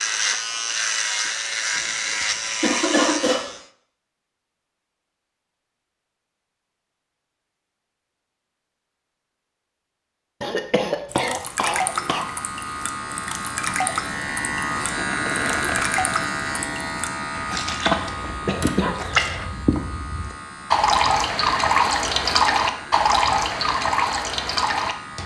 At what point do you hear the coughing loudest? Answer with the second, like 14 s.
3 s.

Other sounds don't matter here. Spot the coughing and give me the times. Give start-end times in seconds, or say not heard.
1.8-3.5, 10.4-12.3, 18.0-19.5.